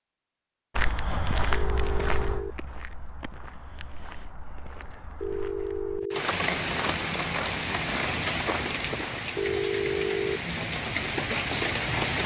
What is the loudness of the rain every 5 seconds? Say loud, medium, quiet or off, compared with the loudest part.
off, loud, loud.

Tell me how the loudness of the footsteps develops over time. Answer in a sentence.
The loudness of the footsteps goes down, then up.